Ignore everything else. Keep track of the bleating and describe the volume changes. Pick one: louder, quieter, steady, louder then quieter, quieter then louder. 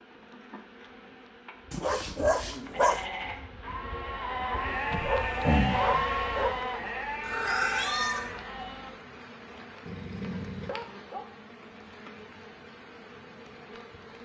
louder then quieter.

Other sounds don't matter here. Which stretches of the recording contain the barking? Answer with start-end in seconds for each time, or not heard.
1.7-3.0, 4.9-6.6, 9.8-11.3.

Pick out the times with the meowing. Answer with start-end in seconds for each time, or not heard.
7.2-8.4.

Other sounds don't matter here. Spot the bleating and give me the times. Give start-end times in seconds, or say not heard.
2.6-9.0.